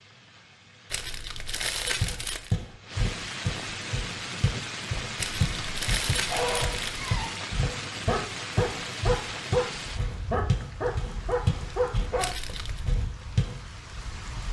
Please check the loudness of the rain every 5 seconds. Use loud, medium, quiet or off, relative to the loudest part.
loud, loud, medium.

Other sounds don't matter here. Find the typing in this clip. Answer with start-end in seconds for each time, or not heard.
not heard.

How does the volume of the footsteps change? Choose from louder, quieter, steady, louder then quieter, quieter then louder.
steady.